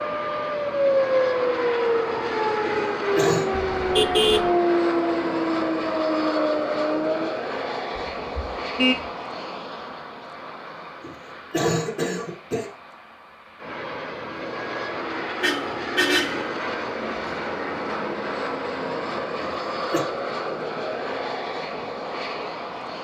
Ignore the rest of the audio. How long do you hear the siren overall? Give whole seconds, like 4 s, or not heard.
7 s.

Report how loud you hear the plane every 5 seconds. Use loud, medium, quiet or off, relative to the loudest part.
loud, loud, medium, loud, loud.